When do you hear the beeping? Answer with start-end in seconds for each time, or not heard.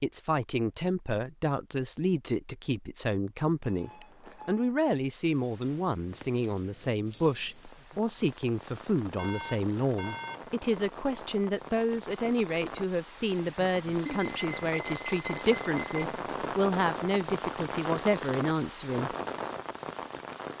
3.6-4.7, 9.2-10.4, 14.1-16.1.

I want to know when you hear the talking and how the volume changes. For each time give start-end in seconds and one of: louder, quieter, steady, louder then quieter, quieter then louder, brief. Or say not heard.
0.0-19.1 steady.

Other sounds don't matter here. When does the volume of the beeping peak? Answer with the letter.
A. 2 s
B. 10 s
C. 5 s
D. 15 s
D.